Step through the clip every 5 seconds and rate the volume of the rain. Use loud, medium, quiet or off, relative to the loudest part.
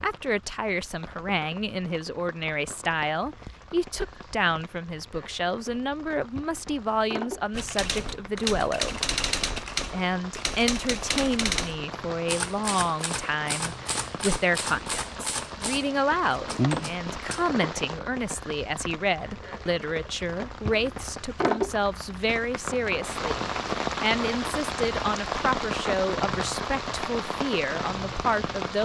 quiet, medium, medium, loud, loud, loud.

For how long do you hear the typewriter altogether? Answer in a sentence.
You can hear the typewriter for 10 seconds altogether.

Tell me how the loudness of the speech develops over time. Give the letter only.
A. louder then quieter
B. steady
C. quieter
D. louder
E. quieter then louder
B.